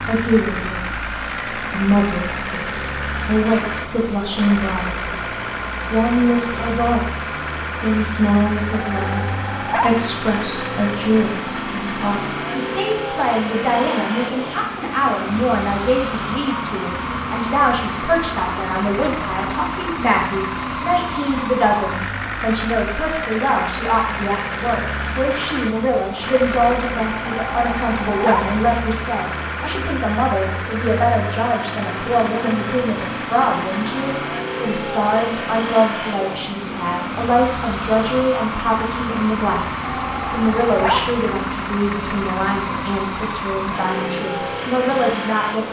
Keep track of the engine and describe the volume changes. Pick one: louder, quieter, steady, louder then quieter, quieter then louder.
steady.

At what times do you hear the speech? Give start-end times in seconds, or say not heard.
0.0-5.0, 5.9-7.1, 7.8-45.6.